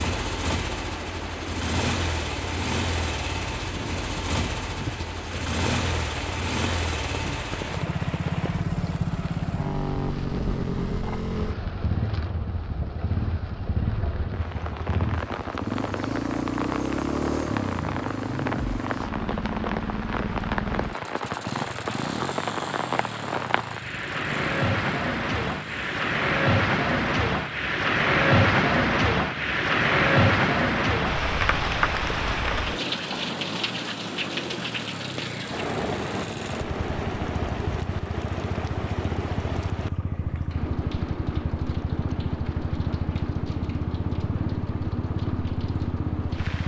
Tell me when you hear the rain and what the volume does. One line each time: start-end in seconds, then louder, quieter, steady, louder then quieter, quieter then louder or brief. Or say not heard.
0.0-46.6 louder then quieter.